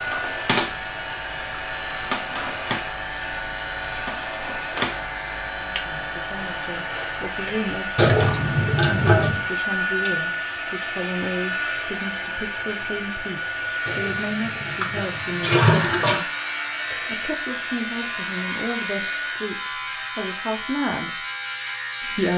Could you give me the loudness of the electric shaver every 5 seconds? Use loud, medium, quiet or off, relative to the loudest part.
loud, medium, medium, loud, loud.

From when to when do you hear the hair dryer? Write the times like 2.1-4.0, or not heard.
0.0-19.5.